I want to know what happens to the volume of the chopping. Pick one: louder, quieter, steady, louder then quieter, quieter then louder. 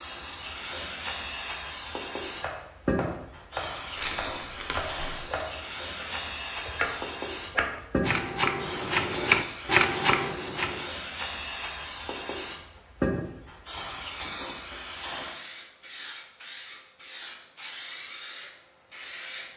louder.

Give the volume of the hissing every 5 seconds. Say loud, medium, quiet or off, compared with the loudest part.
loud, loud, loud, medium.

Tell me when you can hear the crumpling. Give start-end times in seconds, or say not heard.
3.9-5.3.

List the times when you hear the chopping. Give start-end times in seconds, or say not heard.
2.4-10.9.